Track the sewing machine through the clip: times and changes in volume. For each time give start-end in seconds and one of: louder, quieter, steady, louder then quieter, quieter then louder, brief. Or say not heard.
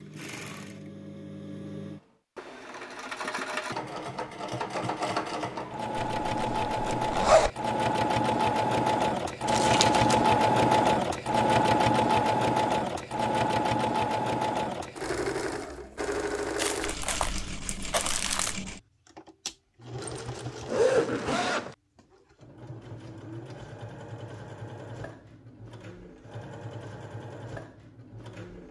0.0-28.6 louder then quieter.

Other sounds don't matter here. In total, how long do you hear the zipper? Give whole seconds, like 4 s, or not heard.
3 s.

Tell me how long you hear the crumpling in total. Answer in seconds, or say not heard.
3 s.